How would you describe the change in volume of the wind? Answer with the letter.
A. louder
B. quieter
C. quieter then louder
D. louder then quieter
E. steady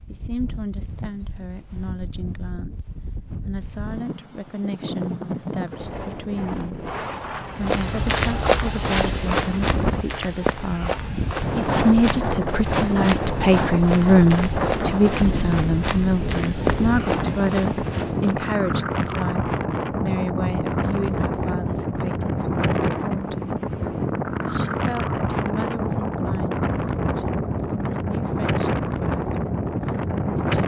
A.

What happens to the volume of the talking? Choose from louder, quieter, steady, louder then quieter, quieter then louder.
louder then quieter.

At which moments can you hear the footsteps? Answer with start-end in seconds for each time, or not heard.
7.5-18.4.